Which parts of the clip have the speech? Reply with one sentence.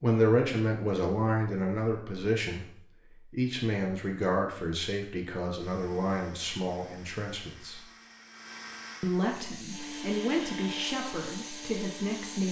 The speech can be heard from 0.0 to 2.6 s, from 3.3 to 7.8 s and from 9.0 to 12.4 s.